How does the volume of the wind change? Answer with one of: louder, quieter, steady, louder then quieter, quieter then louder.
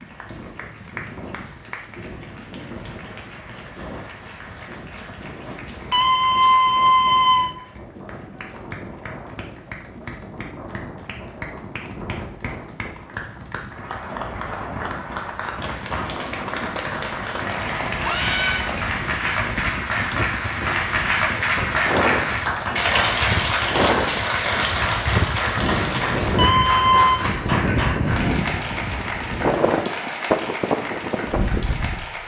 louder.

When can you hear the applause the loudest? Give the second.
23 s.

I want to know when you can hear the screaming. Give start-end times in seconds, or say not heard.
5.9-7.5, 18.0-18.7, 26.4-27.2.